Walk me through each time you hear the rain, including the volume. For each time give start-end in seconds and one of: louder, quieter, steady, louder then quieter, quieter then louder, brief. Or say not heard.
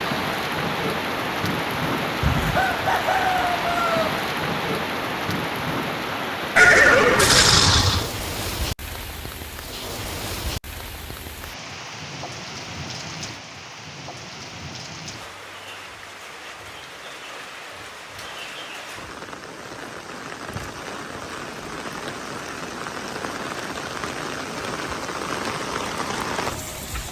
0.0-27.0 quieter then louder.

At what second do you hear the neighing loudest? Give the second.
7 s.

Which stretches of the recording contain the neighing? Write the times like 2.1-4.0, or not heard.
6.5-8.1.